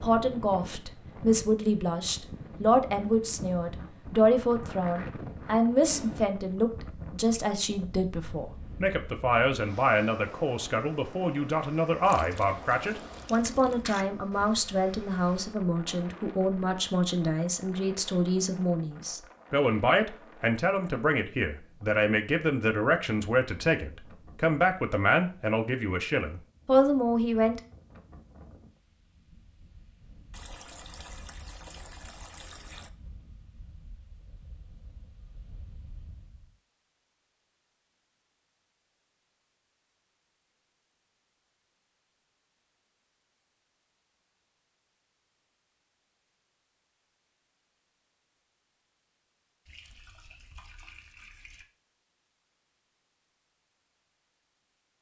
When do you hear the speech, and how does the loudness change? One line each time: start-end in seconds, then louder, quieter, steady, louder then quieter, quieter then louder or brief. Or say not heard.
0.0-27.6 steady.